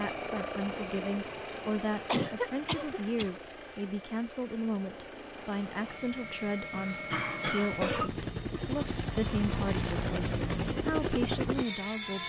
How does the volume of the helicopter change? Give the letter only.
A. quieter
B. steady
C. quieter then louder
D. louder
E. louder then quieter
C.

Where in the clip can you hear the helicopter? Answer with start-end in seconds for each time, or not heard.
0.0-12.2.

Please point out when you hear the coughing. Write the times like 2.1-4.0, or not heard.
2.0-3.3, 6.7-8.1.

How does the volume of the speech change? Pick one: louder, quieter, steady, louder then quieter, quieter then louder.
steady.